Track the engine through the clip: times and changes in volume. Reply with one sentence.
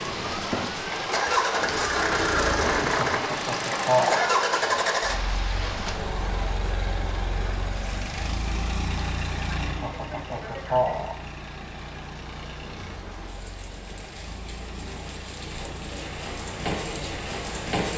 You can hear the engine from 0.0 to 17.6 s, getting quieter.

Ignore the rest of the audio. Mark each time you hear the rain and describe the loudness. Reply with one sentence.
The rain can be heard from 0.0 to 17.9 s, getting quieter then louder.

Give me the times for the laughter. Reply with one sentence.
The laughter can be heard from 2.8 to 4.3 s and from 9.5 to 11.2 s.